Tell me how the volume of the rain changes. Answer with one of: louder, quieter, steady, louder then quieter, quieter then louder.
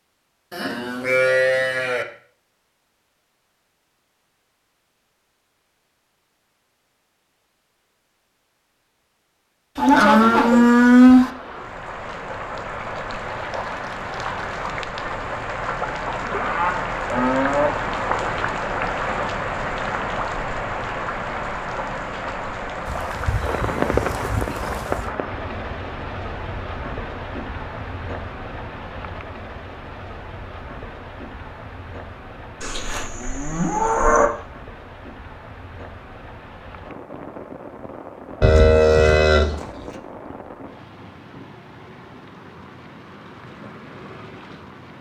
quieter.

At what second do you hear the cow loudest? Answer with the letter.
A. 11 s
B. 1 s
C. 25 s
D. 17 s
A.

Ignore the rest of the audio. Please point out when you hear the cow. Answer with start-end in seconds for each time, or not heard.
0.5-2.0, 9.8-11.3, 16.3-17.7, 22.9-25.1, 32.6-34.3, 38.4-39.5.